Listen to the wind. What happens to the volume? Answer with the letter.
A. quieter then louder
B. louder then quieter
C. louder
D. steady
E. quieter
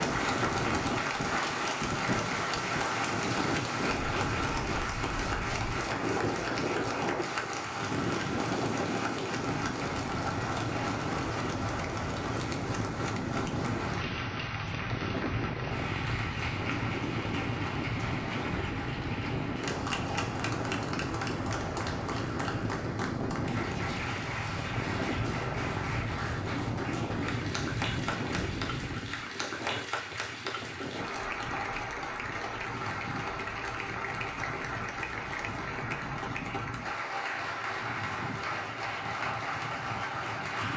E.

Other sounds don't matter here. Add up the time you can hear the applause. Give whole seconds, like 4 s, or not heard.
41 s.